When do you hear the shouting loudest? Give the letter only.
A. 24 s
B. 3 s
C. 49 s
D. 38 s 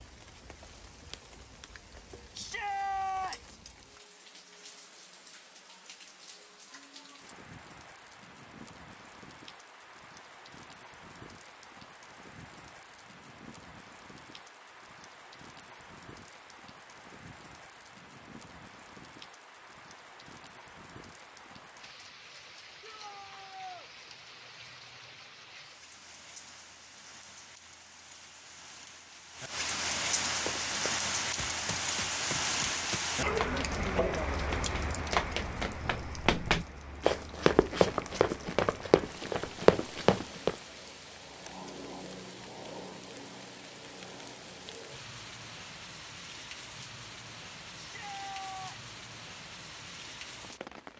B.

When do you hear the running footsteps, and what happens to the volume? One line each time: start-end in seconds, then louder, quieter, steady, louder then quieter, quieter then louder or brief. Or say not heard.
30.4-40.5 louder.